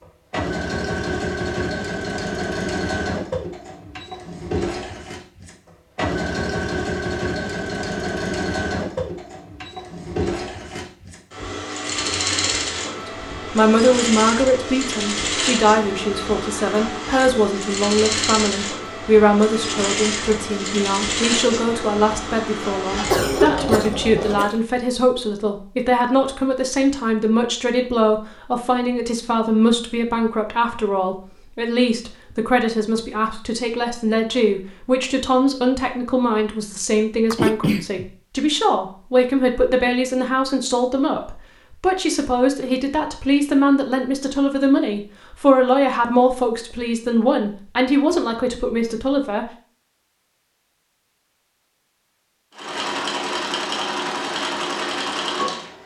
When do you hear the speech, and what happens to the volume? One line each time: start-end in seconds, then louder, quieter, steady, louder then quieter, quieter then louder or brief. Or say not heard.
13.1-49.5 steady.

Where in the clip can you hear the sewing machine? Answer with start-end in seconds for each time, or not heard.
0.0-24.5, 52.5-55.8.